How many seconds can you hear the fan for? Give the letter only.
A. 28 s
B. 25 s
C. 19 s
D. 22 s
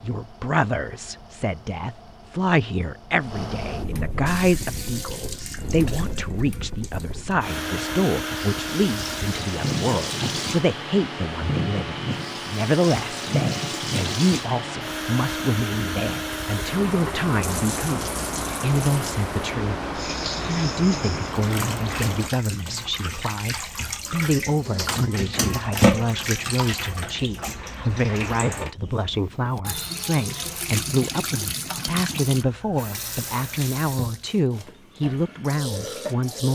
D.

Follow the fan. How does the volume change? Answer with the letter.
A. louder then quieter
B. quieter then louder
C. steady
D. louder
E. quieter
D.